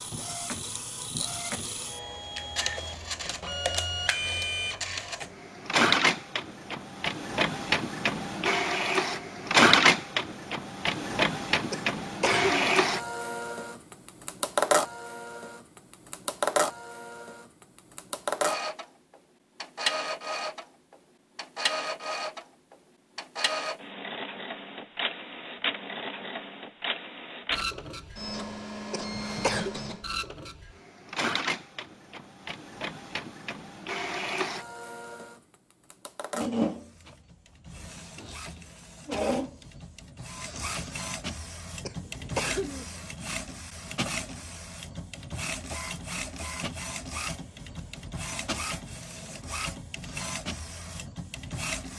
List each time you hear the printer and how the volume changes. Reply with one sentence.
You can hear the printer from 0.0 to 51.9 s, getting quieter.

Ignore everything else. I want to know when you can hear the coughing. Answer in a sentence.
You can hear the coughing from 11.7 to 12.7 s, from 28.9 to 29.8 s and from 41.9 to 42.9 s.